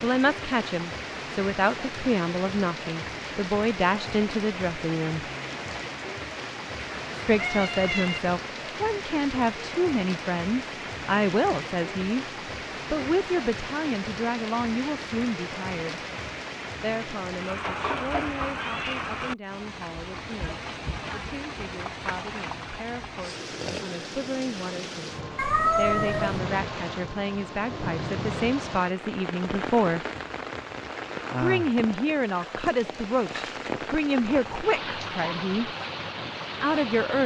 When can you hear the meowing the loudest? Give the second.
26 s.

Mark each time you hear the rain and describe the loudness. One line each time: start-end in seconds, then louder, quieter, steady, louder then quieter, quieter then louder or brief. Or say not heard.
0.0-37.2 steady.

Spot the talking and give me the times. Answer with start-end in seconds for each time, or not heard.
0.0-5.2, 7.2-12.2, 12.9-16.0, 16.8-30.1, 31.4-35.7, 36.6-37.2.